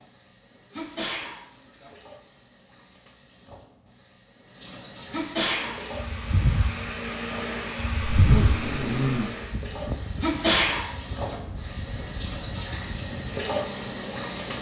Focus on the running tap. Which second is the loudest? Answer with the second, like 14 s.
14 s.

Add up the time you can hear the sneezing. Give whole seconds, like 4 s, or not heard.
3 s.